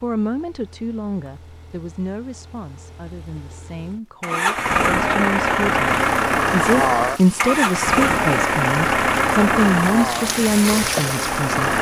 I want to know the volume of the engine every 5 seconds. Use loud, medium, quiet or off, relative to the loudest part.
medium, loud, medium.